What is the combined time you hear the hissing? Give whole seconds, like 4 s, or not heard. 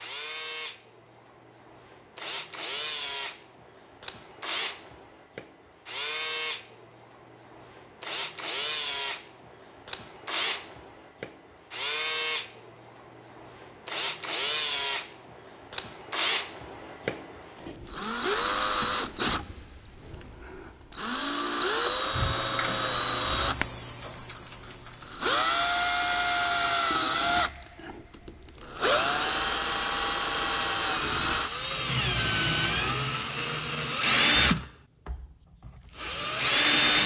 5 s.